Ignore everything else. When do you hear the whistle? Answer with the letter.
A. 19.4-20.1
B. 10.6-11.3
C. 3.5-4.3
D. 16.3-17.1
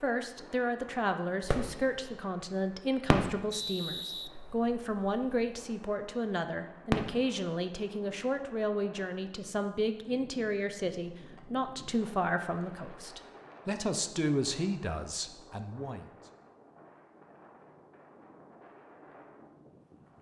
C.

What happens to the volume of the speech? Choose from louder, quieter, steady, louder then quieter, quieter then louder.
steady.